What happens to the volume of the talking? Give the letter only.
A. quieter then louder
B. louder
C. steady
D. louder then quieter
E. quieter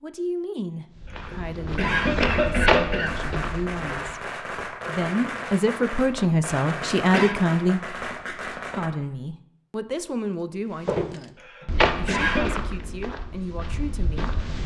D.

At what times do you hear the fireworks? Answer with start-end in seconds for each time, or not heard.
3.0-8.9.